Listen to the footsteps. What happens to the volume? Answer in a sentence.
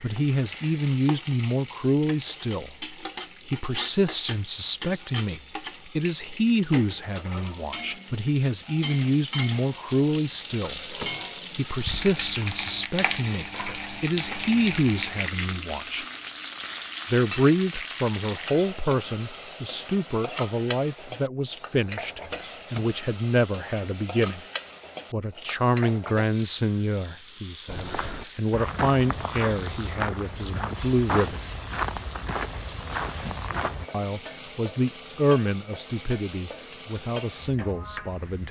The loudness of the footsteps stays about the same.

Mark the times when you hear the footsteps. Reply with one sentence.
You can hear the footsteps from 27.6 to 33.9 s.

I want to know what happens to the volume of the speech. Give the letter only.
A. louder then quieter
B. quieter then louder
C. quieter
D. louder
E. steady
E.